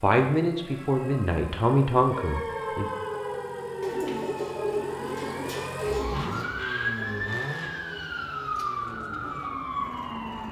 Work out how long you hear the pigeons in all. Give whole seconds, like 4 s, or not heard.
3 s.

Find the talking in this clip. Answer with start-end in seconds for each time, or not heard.
0.0-2.9.